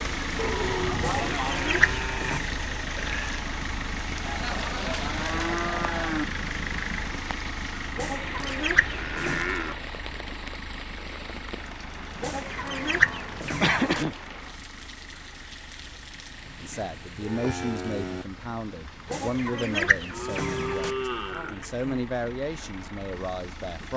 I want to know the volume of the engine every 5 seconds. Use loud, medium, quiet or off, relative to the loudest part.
loud, loud, medium, quiet, medium.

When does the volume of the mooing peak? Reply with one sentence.
The volume of the mooing peaks at 14 seconds.